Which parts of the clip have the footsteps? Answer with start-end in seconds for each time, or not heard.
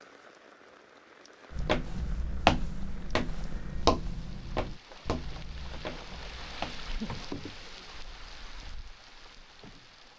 1.5-7.0.